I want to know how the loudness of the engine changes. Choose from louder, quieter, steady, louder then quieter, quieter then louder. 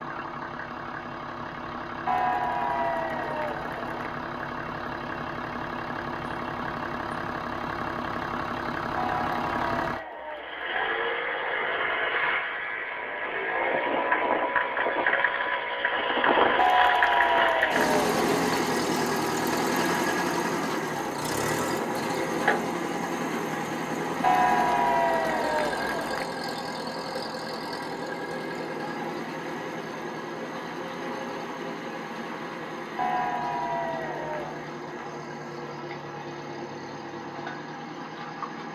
louder then quieter.